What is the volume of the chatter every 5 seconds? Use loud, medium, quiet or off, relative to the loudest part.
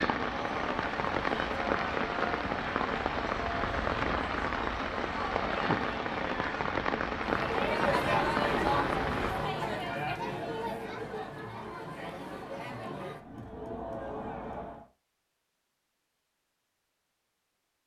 medium, loud, medium, off.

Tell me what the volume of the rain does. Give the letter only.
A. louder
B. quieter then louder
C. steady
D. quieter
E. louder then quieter
C.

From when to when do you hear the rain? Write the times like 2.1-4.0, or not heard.
0.0-9.6.